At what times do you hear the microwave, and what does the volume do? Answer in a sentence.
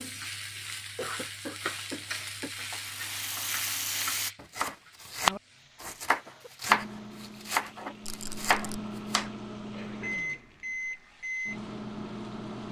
You can hear the microwave from 6.7 to 12.6 s, getting louder.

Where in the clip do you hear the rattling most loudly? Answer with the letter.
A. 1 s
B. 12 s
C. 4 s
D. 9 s
C.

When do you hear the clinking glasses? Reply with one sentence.
You can't hear the clinking glasses here.